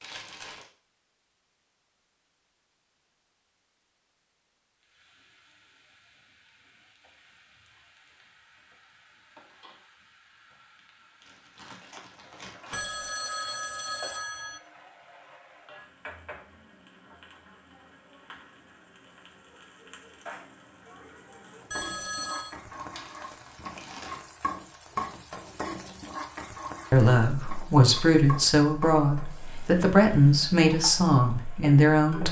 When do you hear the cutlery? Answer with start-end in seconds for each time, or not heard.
not heard.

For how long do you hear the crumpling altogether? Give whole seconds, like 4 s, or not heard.
4 s.